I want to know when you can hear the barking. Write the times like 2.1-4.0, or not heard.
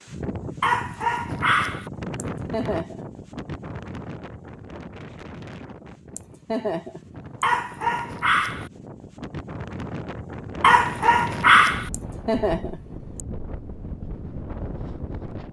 0.6-1.9, 7.4-8.7, 10.6-11.9.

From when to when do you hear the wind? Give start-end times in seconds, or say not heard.
0.0-15.4.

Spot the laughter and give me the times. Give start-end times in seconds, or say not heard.
2.1-3.0, 6.2-7.5, 11.9-13.2.